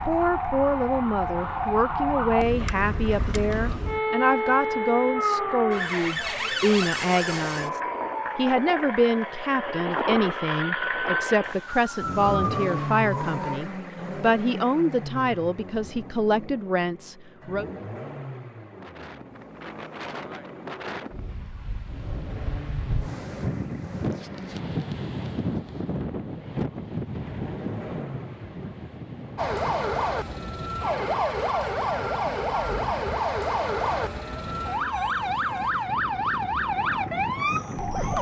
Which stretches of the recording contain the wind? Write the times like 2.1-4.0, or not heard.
18.6-38.1.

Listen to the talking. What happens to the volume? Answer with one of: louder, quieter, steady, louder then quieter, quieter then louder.
steady.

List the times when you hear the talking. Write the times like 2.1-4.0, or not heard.
0.1-17.6.